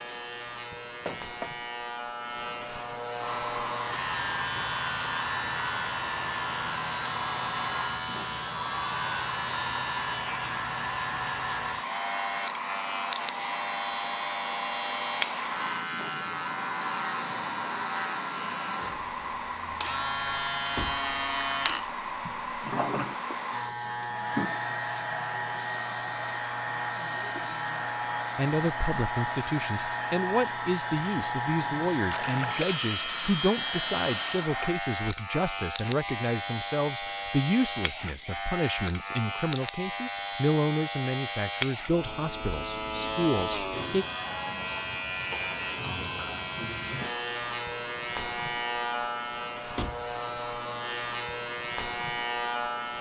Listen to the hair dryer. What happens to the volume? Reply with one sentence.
The loudness of the hair dryer stays about the same.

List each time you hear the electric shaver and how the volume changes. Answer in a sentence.
You can hear the electric shaver from 0.0 to 52.9 s, at a steady volume.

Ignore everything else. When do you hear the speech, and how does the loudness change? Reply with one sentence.
You can hear the speech from 28.4 to 44.0 s, at a steady volume.